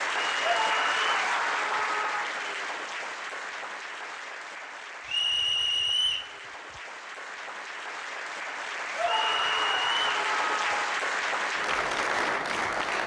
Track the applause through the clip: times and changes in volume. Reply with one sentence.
You can hear the applause from 0.0 to 13.0 s, getting quieter then louder.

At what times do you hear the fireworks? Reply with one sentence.
The fireworks can't be heard in this clip.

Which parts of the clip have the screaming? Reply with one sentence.
The screaming can be heard from 0.4 to 2.4 s and from 8.9 to 10.8 s.